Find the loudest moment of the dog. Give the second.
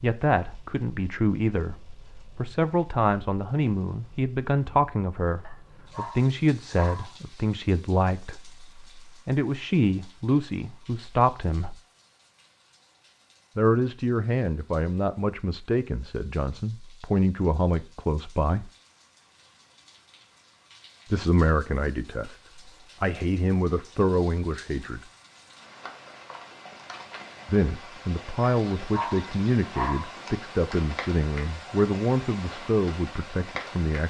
30 s.